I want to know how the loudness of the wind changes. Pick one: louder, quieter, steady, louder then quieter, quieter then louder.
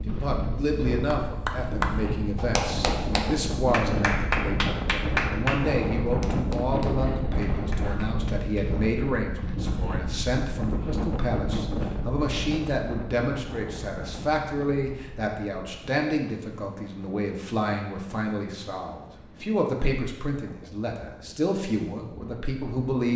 quieter.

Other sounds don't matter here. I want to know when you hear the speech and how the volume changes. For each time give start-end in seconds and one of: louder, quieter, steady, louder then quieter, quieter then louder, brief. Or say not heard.
0.0-23.1 steady.